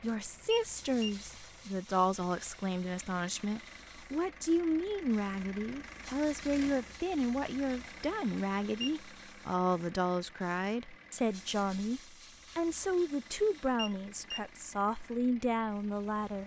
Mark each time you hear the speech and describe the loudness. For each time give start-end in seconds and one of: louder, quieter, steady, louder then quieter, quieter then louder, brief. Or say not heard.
0.0-16.4 steady.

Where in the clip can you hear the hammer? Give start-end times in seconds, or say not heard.
not heard.